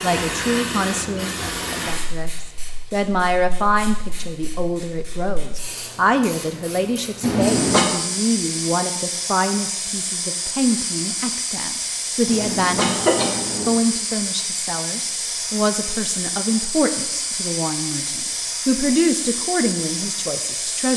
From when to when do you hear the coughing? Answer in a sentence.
The coughing can be heard from 7.2 to 7.9 s and from 12.2 to 13.7 s.